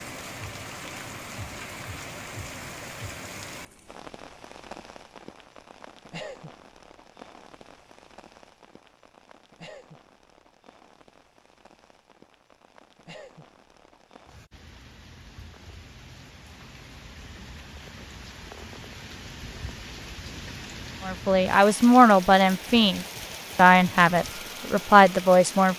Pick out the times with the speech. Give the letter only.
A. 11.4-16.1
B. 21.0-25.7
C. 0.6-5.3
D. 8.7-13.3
B.